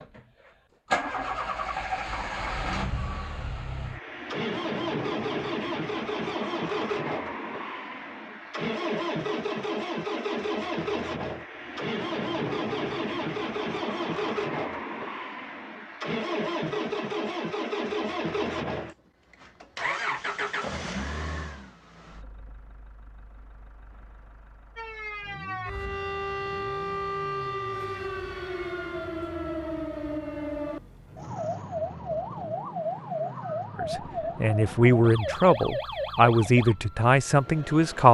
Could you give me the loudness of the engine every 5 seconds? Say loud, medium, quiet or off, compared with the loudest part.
loud, loud, loud, loud, medium, quiet, quiet, quiet.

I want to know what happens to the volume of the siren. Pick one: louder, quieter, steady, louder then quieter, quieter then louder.
steady.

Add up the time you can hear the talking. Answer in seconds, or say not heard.
4 s.